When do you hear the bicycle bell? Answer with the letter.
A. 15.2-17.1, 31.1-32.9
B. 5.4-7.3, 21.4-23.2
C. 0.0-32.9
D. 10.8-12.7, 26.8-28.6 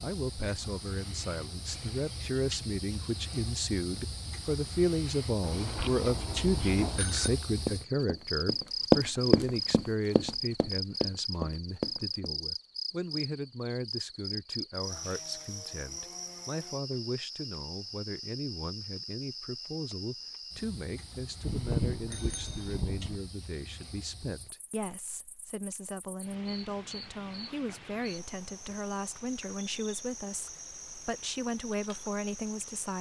B.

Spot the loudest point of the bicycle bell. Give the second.
22 s.